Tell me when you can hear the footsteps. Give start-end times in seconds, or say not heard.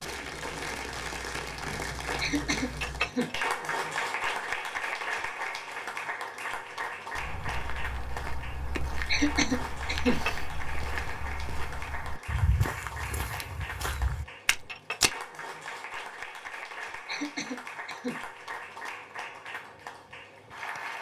7.2-15.1.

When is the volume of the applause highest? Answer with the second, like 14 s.
4 s.